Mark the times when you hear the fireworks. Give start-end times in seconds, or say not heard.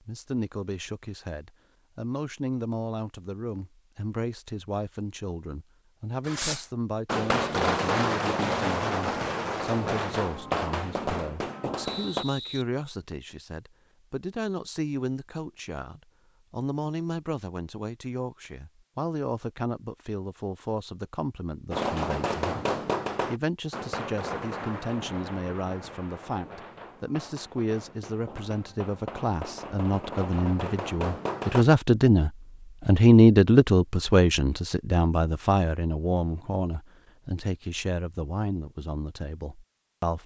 6.2-12.2, 21.7-31.6.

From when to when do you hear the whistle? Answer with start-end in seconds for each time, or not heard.
11.8-13.3.